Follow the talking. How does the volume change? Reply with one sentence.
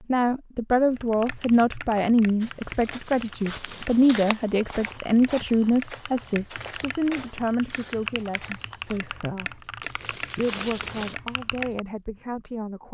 The volume of the talking goes down.